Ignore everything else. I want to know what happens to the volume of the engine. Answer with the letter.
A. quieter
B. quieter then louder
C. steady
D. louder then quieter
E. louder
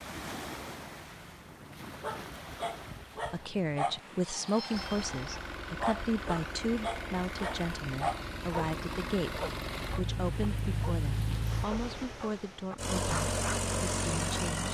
E.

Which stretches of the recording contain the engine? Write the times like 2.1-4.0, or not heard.
4.7-14.7.